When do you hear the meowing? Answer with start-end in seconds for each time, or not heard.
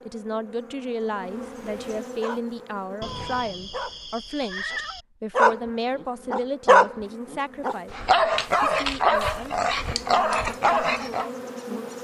3.0-5.0.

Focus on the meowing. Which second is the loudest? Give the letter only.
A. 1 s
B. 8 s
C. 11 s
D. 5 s
D.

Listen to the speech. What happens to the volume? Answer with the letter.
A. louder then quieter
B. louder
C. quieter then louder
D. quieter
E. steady
D.